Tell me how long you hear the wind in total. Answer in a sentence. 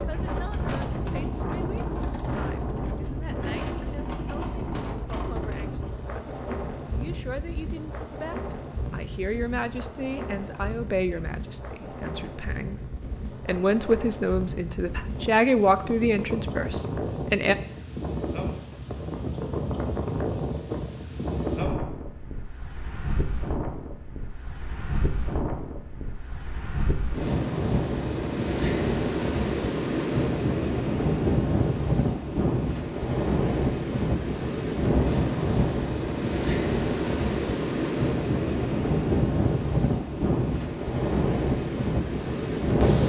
The wind can be heard for 43 seconds in total.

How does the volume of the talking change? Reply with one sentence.
The volume of the talking goes up.